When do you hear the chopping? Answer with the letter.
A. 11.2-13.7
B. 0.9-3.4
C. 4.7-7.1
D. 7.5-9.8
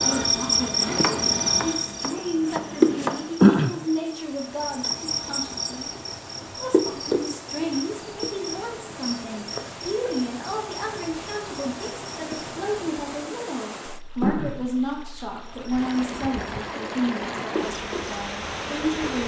B.